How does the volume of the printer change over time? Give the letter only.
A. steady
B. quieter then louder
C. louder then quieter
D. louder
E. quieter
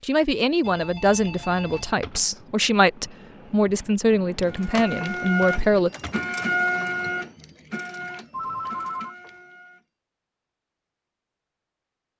E.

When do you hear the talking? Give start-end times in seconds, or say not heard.
0.0-5.9.